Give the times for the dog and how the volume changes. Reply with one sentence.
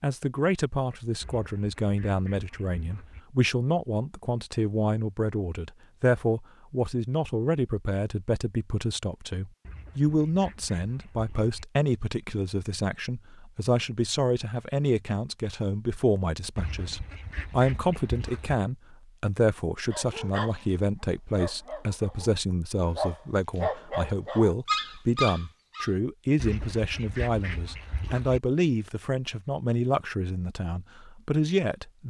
You can hear the dog briefly from 19.9 to 20.6 s; and from 21.4 to 25.9 s, getting louder.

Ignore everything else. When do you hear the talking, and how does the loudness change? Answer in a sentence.
You can hear the talking from 0.0 to 32.0 s, at a steady volume.